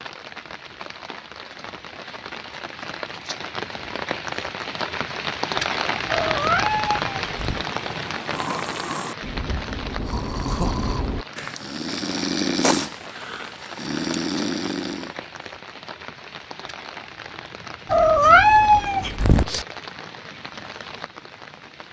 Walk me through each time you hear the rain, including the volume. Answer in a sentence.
The rain can be heard from 0.0 to 21.8 s, getting louder then quieter.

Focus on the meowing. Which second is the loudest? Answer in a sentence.
The volume of the meowing peaks at 18 seconds.